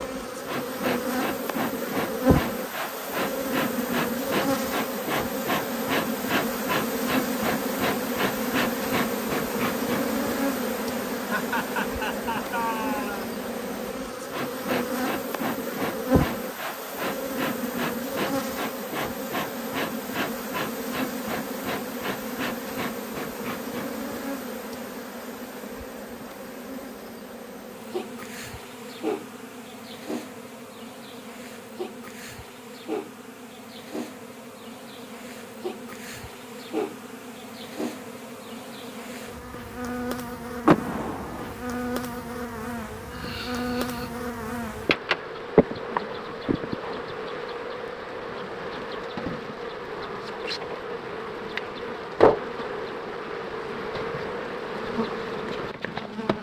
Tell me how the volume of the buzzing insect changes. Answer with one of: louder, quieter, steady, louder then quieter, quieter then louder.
quieter then louder.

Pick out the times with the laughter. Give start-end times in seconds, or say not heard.
11.2-13.3, 43.1-44.1.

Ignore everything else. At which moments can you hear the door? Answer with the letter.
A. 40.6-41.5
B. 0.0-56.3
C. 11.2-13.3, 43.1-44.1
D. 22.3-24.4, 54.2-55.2
A.